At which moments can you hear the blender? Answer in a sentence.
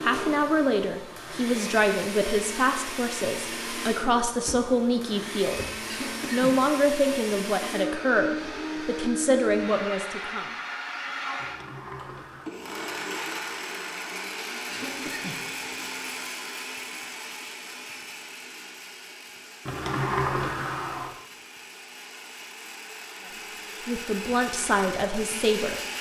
The blender can be heard from 0.0 to 25.9 s.